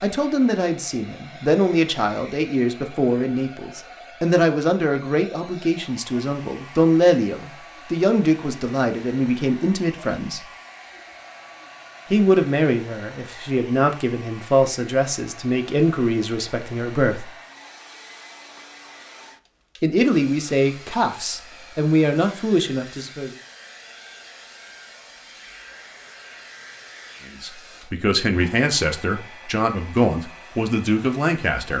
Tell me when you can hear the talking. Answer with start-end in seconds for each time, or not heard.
0.0-10.4, 12.1-17.3, 19.8-23.3, 27.2-31.7.